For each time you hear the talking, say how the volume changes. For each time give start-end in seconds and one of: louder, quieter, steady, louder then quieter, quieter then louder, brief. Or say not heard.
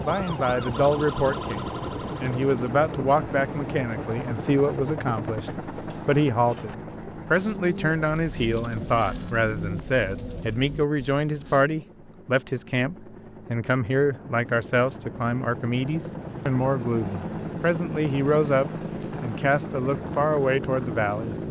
0.0-21.4 steady.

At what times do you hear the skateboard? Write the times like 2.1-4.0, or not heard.
not heard.